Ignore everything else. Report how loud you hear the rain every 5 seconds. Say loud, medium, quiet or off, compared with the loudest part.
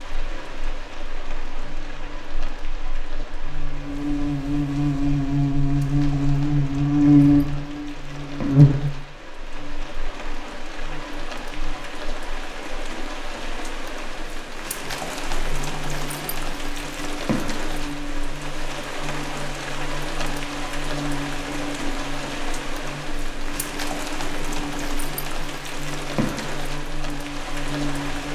medium, medium, loud, loud, loud, loud.